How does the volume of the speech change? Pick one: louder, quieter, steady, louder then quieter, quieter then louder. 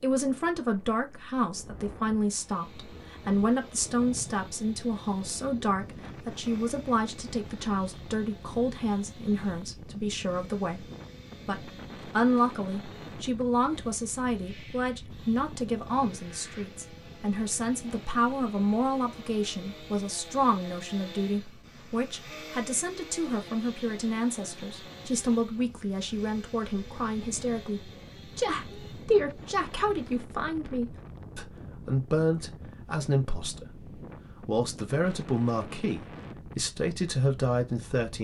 steady.